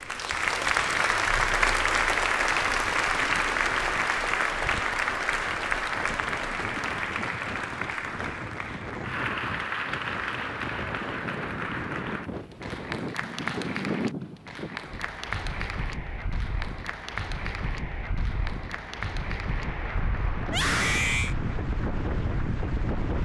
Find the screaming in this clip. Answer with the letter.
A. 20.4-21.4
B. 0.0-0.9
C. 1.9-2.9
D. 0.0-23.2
A.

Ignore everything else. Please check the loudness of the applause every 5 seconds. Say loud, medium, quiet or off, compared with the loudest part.
loud, medium, medium, quiet, quiet.